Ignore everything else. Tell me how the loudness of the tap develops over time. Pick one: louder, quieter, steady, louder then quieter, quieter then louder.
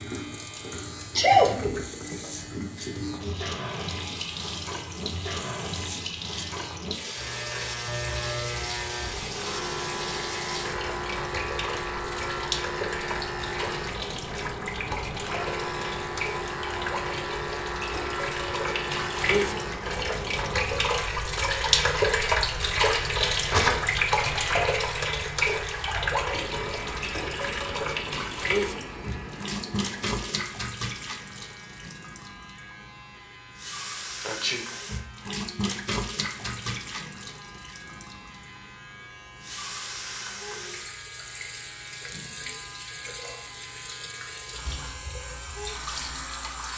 louder then quieter.